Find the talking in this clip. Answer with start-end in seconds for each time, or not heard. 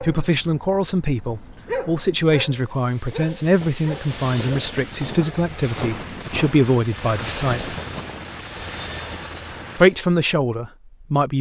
0.0-7.8, 9.8-11.3.